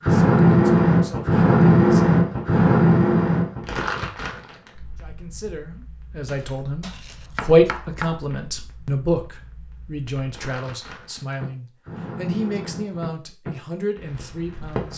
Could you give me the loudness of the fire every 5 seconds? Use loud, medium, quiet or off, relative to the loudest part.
loud, quiet, quiet.